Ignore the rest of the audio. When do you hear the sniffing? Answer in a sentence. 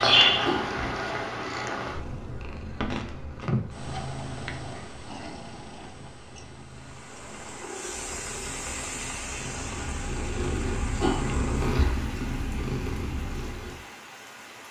The sniffing can be heard from 0.4 to 0.8 s and from 11.0 to 11.9 s.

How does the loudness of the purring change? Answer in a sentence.
The volume of the purring goes down, then up.